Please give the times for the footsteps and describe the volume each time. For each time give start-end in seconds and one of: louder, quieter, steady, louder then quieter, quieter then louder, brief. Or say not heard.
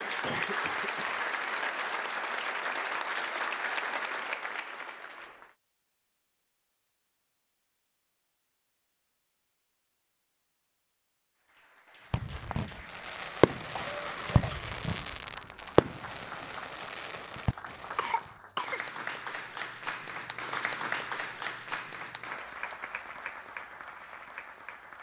not heard.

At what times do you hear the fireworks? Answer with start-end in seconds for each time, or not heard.
12.1-18.3.